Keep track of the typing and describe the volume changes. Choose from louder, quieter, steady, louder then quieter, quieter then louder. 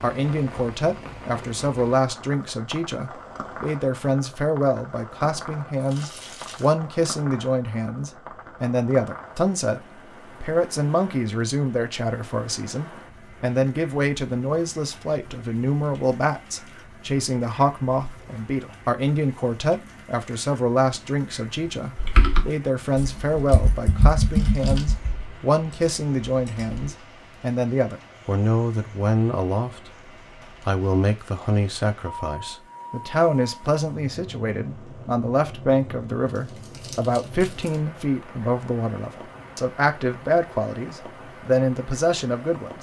louder then quieter.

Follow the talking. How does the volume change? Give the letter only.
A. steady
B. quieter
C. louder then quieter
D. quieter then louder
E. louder
A.